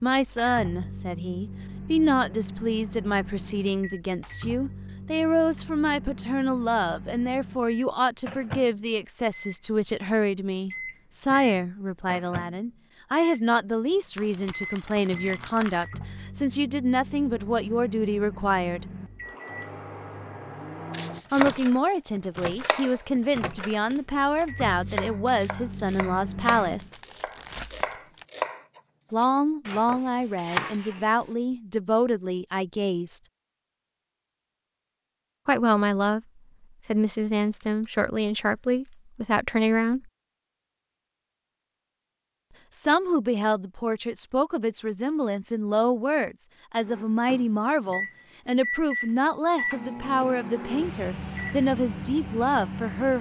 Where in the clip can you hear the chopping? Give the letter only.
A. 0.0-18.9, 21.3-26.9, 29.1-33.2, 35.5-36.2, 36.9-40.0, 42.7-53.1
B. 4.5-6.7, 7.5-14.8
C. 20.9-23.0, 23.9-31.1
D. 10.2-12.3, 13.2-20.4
C.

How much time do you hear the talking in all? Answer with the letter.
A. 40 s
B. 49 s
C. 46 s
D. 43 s
D.